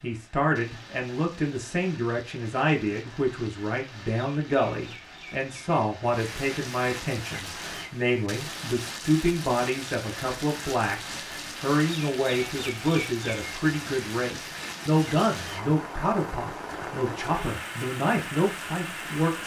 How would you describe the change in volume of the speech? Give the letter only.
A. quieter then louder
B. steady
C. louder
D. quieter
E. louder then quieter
B.